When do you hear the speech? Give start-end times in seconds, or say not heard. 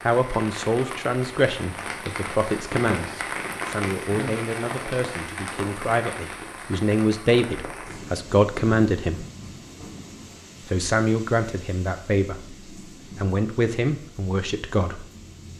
0.0-9.2, 10.7-15.1.